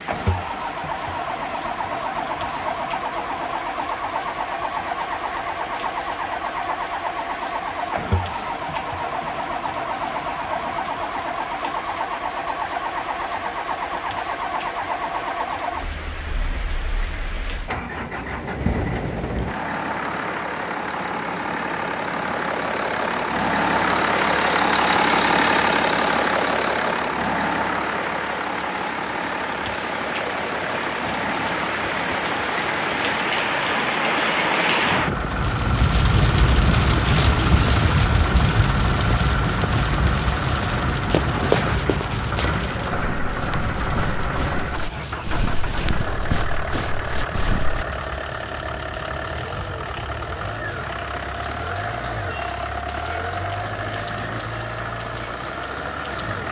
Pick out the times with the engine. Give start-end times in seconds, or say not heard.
0.0-56.4.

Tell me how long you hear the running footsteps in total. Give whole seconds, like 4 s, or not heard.
7 s.